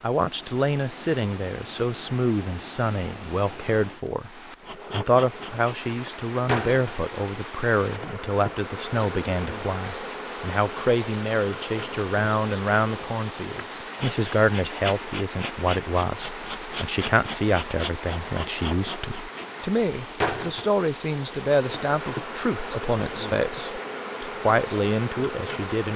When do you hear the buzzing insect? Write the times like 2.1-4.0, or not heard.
4.6-25.9.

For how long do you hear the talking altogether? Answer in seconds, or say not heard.
25 s.